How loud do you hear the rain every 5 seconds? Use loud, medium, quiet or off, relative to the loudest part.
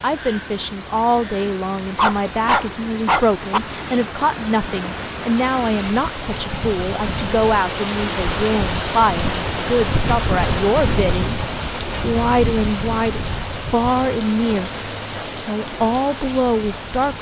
medium, loud, loud, medium.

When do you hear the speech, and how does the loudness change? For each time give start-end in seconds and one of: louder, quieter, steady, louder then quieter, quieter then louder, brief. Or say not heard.
0.0-17.1 steady.